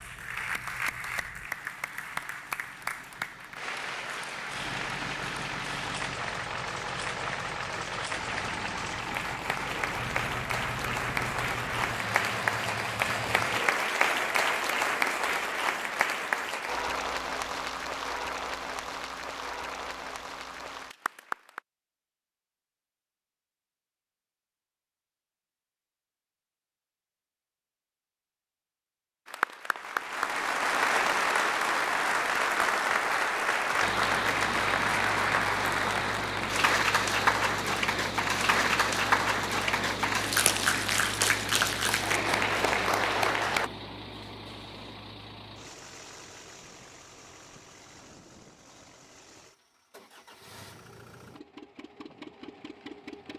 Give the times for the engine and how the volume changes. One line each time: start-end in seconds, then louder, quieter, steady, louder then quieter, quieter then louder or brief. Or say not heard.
0.0-13.6 louder
33.8-53.3 quieter.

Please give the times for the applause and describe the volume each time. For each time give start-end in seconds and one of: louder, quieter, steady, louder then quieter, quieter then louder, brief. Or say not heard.
0.0-21.6 louder then quieter
29.2-43.7 steady.